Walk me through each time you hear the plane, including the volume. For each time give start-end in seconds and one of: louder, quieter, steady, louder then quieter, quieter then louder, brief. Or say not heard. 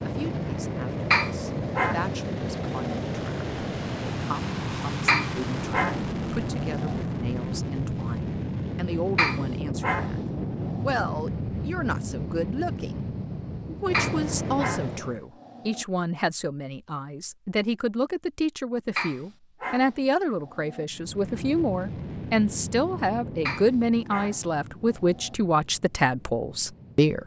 0.0-15.2 steady
20.9-27.2 quieter.